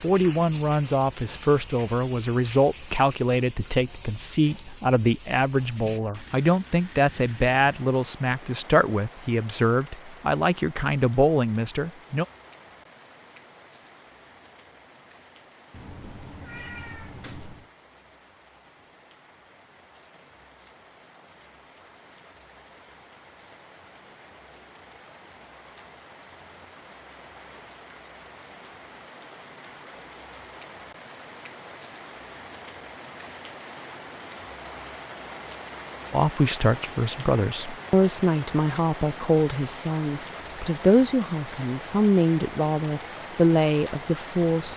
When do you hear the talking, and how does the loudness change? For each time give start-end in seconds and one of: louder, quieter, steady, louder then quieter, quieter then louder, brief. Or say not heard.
0.0-12.2 steady
36.1-44.7 steady.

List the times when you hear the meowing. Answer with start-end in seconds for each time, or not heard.
15.7-17.7.